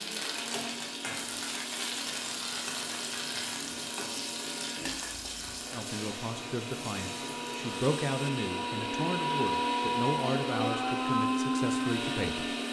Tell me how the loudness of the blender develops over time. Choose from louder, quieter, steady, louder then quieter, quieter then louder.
louder.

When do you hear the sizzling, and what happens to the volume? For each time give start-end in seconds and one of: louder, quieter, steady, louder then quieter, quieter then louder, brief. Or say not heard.
0.0-12.6 quieter.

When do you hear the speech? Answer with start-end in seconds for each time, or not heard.
5.7-12.5.